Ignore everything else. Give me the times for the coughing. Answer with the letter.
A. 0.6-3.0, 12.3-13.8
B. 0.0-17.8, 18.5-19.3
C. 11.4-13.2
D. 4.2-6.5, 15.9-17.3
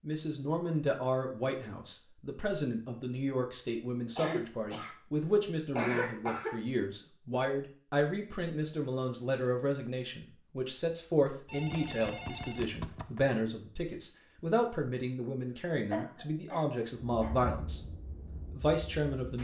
D.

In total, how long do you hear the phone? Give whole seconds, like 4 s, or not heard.
2 s.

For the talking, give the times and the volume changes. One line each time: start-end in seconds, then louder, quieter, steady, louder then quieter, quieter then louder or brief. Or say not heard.
0.0-17.8 steady
18.5-19.3 brief.